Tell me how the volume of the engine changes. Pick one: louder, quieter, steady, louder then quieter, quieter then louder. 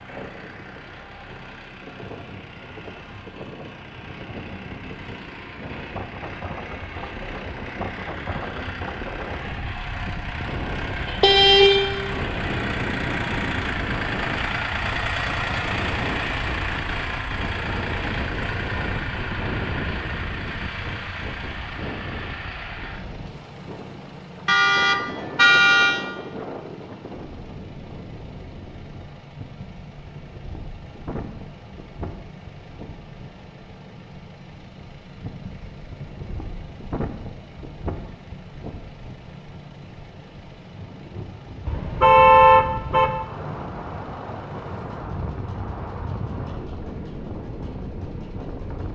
louder then quieter.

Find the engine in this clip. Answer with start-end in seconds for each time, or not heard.
0.0-48.8.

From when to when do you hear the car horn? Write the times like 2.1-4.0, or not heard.
11.1-12.1, 24.4-26.1, 41.6-43.1.